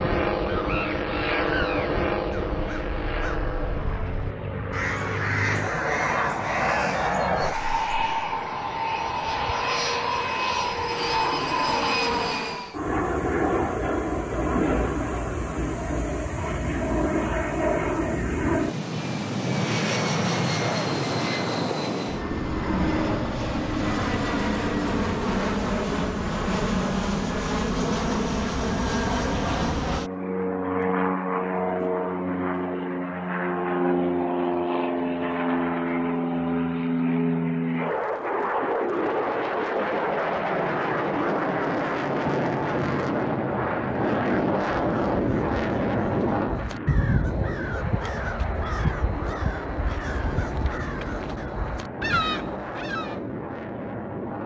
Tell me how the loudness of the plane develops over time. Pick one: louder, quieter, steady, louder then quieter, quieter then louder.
steady.